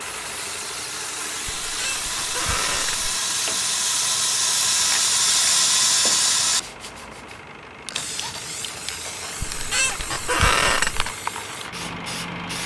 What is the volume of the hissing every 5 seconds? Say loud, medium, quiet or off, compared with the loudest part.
loud, loud, medium.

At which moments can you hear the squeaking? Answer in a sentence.
You can hear the squeaking from 1.4 to 3.1 s and from 9.4 to 11.2 s.